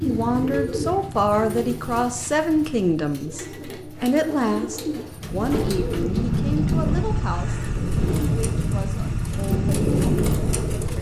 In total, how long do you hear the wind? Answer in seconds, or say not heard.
6 s.